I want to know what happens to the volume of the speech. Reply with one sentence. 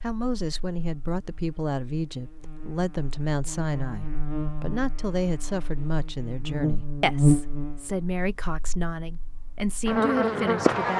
The volume of the speech stays about the same.